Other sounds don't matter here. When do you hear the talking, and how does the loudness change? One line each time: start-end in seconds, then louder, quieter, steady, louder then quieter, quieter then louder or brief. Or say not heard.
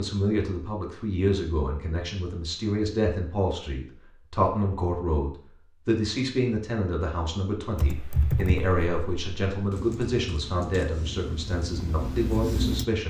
0.0-13.0 steady.